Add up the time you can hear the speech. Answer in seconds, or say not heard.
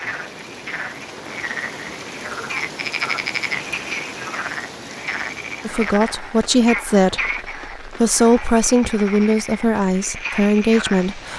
6 s.